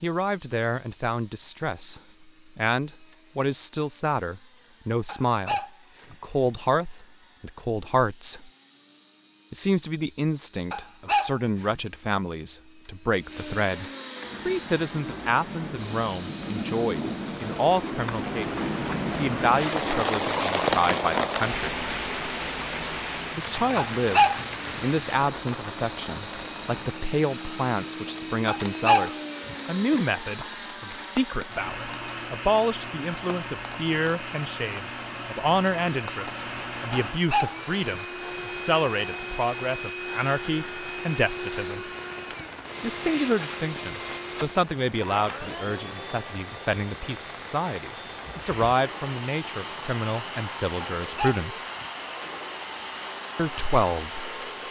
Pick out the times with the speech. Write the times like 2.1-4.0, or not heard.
0.0-8.5, 9.5-21.7, 23.4-41.9, 42.8-51.6, 53.4-54.6.